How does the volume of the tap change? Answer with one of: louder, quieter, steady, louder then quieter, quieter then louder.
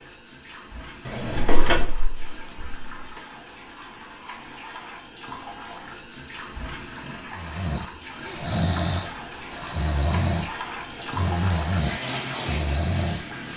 louder.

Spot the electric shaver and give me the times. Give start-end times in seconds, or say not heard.
not heard.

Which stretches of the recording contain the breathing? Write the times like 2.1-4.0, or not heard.
7.3-13.2.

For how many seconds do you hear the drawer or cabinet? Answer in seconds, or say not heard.
2 s.